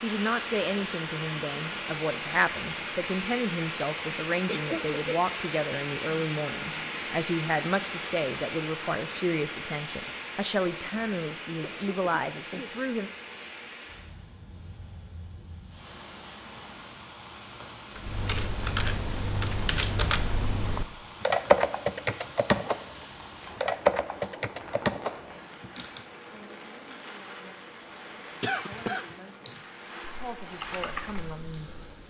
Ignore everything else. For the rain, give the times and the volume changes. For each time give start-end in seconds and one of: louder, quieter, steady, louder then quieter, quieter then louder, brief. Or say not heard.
0.0-32.0 quieter.